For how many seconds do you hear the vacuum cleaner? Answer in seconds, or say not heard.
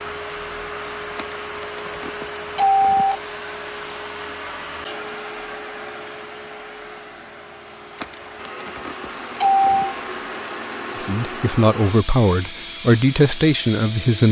14 s.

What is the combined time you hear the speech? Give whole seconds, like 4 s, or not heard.
3 s.